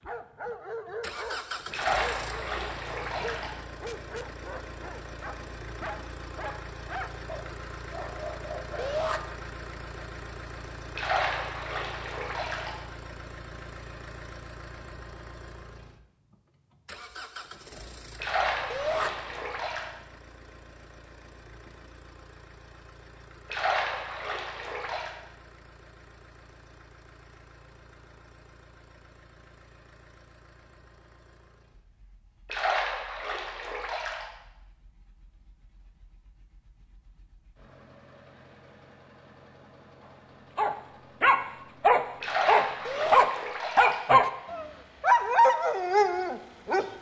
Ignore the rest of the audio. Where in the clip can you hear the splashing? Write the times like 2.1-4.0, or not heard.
1.7-3.5, 10.9-12.7, 18.2-19.9, 23.5-25.1, 32.5-34.2, 42.2-44.0.